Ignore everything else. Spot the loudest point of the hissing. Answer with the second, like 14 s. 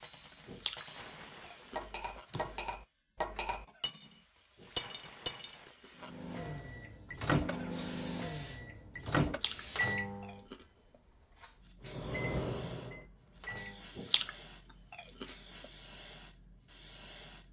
8 s.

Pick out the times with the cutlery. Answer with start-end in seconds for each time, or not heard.
0.0-5.6.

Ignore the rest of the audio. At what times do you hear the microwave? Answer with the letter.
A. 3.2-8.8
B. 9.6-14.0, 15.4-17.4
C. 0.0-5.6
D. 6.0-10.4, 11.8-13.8
D.